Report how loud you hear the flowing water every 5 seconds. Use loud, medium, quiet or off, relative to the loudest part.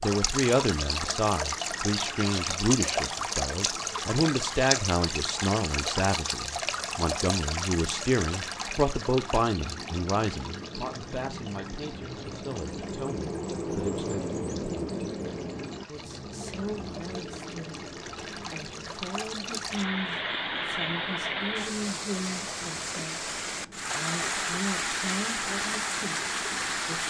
loud, loud, quiet, medium, loud, loud.